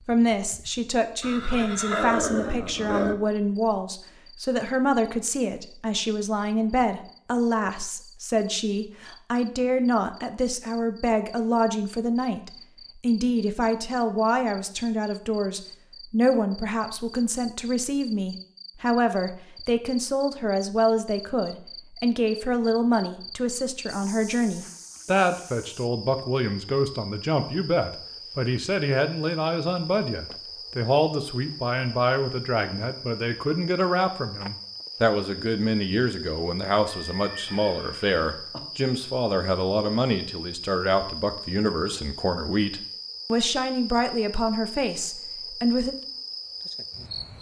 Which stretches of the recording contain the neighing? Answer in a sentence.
The neighing can be heard from 1.2 to 3.1 s and from 37.1 to 38.6 s.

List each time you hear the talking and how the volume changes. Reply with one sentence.
You can hear the talking from 0.1 to 46.0 s, at a steady volume.